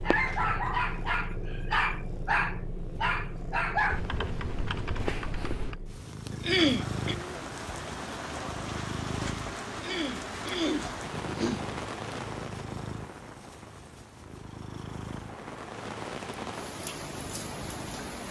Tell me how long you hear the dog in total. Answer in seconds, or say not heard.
4 s.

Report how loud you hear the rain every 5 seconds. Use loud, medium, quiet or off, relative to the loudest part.
off, loud, loud, loud.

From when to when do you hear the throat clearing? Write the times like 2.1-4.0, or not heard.
6.3-7.2, 9.7-11.7.